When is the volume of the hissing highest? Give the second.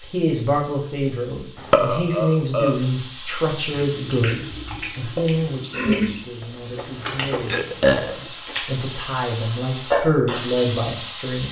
10 s.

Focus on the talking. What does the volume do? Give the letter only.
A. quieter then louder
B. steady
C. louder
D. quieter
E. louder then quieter
A.